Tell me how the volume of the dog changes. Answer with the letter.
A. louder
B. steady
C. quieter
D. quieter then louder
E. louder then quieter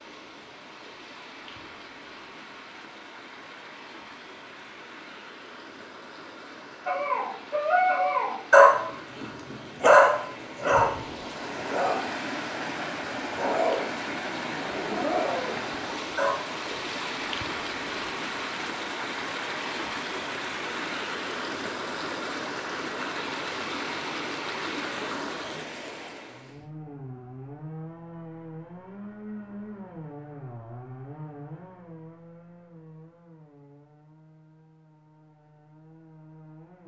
C.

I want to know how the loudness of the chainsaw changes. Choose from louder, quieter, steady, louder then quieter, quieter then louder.
quieter.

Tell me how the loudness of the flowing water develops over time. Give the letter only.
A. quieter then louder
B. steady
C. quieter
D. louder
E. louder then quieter
D.